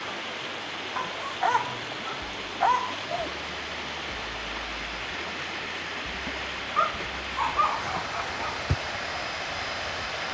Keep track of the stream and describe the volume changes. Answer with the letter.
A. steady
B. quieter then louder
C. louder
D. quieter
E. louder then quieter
A.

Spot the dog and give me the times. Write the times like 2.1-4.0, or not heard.
0.9-3.3, 6.8-8.8.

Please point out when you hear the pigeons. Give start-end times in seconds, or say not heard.
not heard.